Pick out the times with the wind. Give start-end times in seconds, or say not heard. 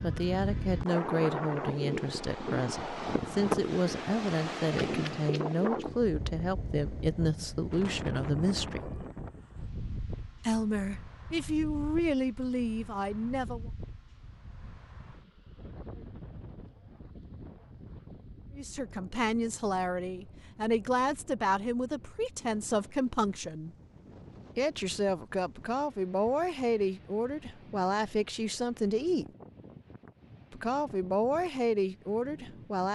0.0-32.8.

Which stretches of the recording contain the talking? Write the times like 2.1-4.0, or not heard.
0.0-9.0, 10.4-13.7, 18.6-23.8, 24.6-29.2, 30.5-32.8.